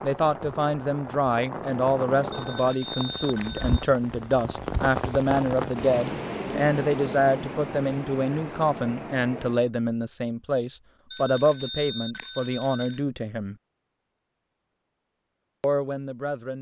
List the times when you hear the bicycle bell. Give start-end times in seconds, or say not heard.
2.3-3.9, 11.1-13.1.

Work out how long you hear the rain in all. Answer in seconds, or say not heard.
10 s.